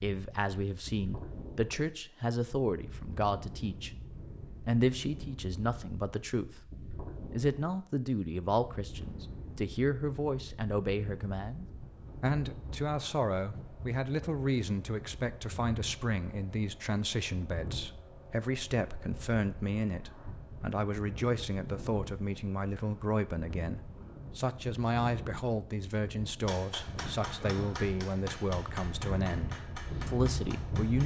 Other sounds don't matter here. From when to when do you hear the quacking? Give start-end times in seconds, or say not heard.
not heard.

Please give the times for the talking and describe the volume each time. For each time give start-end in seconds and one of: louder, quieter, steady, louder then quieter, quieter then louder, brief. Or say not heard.
0.0-31.0 steady.